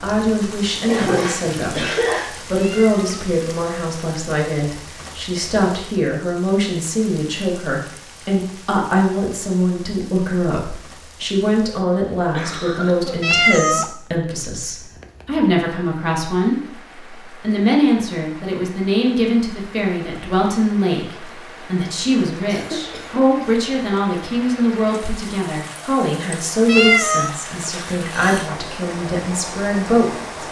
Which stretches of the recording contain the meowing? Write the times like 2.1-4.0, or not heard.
2.5-3.2, 13.2-13.8, 26.6-27.3.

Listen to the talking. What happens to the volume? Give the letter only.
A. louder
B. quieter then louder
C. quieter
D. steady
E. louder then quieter
D.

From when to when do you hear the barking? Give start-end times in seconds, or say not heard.
not heard.